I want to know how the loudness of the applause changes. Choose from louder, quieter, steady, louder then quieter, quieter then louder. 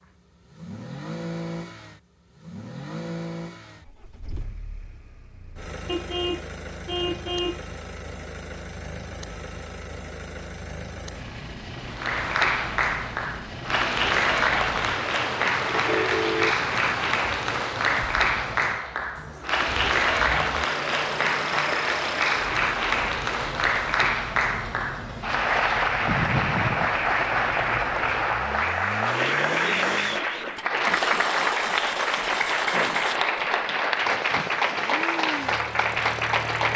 steady.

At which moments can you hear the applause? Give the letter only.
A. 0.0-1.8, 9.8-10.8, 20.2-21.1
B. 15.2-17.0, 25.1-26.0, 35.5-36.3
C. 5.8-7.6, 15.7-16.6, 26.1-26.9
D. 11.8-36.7
D.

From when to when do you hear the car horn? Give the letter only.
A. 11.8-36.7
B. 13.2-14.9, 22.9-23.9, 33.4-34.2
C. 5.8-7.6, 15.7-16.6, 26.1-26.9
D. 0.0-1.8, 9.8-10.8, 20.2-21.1
C.